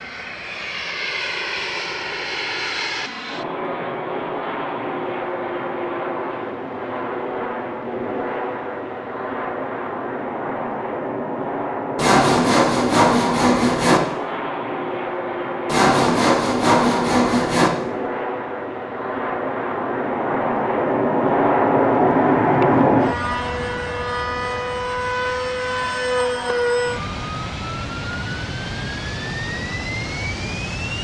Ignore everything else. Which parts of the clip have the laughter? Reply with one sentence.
You can't hear the laughter here.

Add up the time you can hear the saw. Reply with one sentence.
The saw can be heard for 4 seconds in total.